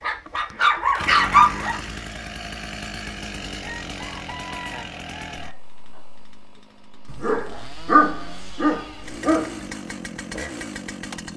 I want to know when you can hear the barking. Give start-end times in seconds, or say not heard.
0.0-1.8, 7.1-9.7.